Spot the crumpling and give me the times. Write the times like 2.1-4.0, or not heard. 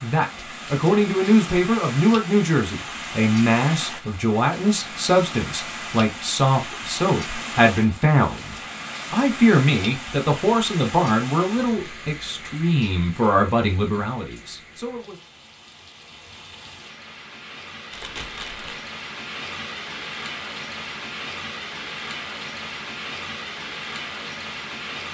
17.9-18.9.